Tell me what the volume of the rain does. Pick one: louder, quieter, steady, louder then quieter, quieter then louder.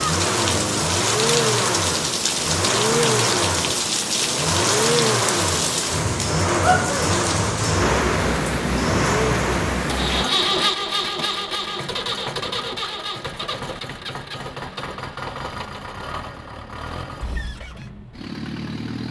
steady.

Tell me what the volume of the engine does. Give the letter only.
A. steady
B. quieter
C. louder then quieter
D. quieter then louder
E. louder
B.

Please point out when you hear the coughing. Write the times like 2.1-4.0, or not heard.
not heard.